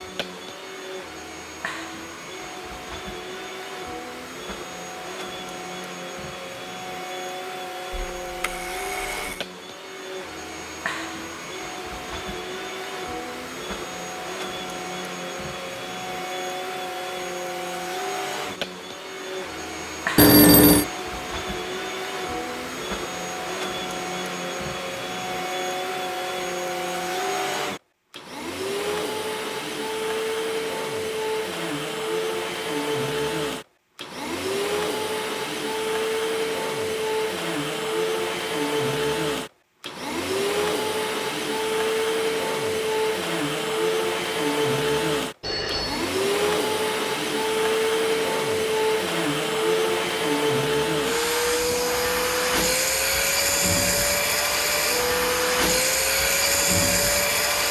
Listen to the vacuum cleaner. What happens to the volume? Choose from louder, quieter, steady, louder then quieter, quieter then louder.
louder.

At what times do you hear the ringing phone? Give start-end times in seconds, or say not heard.
7.9-9.4, 20.1-20.9, 45.4-46.1.